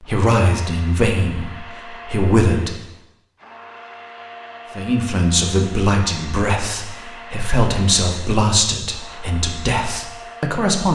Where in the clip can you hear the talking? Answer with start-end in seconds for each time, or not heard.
0.0-2.8, 4.8-10.8.